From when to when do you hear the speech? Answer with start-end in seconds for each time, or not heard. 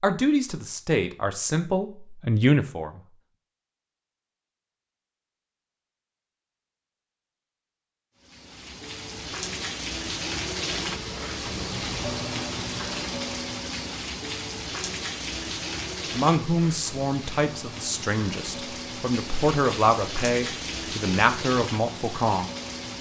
0.0-3.0, 16.1-22.5.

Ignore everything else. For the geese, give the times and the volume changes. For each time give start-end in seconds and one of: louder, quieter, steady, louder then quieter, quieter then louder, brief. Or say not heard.
not heard.